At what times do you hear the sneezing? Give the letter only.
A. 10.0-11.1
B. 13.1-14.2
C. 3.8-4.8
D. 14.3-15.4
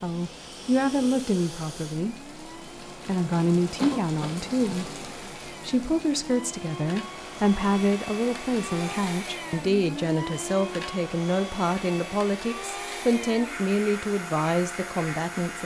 C.